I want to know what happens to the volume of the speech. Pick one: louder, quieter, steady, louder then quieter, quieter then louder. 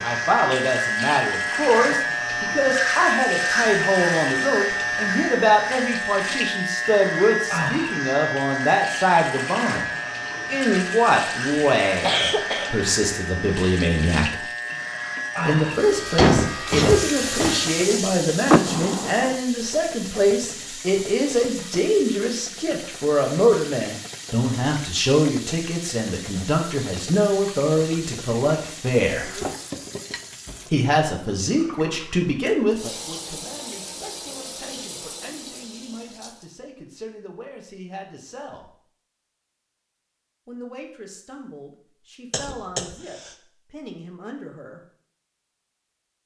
quieter.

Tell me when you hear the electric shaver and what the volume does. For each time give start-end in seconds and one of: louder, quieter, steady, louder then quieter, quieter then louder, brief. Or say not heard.
0.0-17.9 quieter.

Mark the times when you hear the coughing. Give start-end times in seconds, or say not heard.
11.9-12.8, 16.1-17.6, 42.3-42.9.